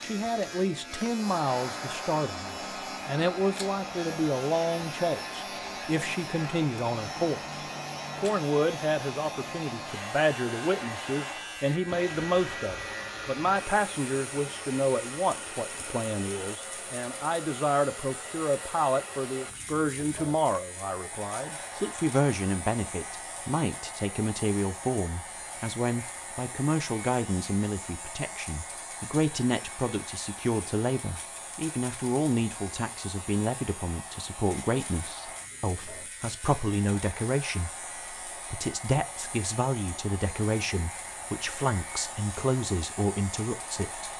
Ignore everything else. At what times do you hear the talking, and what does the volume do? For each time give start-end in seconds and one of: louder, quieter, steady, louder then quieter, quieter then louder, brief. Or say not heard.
0.0-44.1 steady.